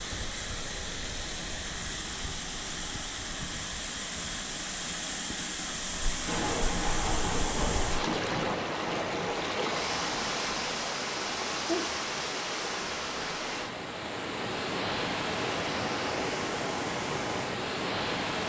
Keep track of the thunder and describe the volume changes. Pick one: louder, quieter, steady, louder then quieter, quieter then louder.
quieter.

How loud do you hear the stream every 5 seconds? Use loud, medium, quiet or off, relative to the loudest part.
medium, loud, loud, loud.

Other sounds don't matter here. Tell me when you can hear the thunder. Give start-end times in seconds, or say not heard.
6.0-10.3.